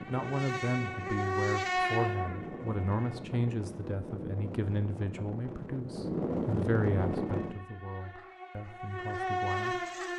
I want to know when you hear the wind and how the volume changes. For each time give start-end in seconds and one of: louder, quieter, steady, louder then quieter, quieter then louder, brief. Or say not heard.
0.0-7.6 louder.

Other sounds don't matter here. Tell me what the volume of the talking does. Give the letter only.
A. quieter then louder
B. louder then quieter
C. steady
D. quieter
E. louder
D.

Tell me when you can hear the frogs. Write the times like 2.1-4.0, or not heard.
not heard.